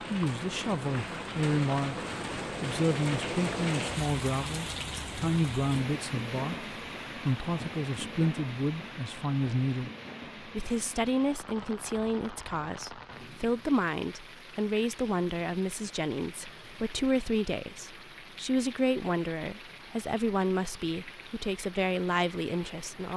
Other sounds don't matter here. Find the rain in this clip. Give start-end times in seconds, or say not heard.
0.0-23.1.